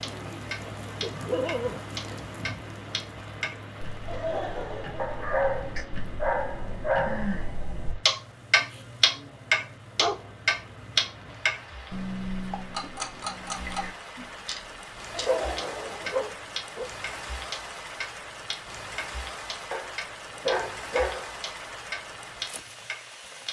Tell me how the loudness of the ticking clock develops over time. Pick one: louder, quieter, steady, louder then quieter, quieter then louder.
louder then quieter.